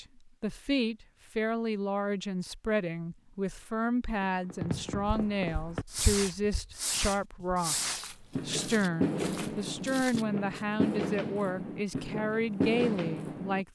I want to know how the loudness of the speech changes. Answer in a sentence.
The volume of the speech stays about the same.